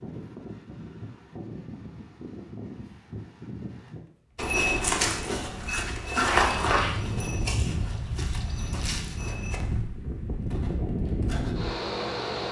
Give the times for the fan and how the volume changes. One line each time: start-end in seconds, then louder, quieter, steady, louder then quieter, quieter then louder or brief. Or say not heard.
0.0-12.4 louder.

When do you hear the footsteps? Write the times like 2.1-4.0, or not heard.
4.3-11.7.